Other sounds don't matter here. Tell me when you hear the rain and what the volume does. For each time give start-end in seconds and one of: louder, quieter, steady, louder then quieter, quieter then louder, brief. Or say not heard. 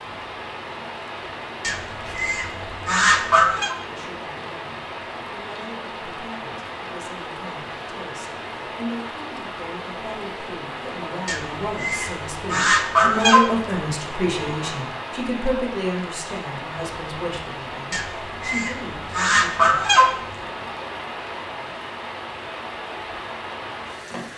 0.0-24.3 steady.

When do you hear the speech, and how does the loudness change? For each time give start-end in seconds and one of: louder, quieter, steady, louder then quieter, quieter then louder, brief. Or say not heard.
3.9-19.8 louder then quieter.